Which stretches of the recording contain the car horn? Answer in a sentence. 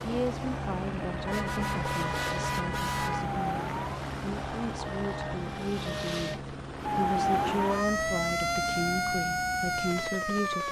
You can hear the car horn from 1.2 to 3.3 s.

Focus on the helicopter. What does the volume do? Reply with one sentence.
The volume of the helicopter goes down.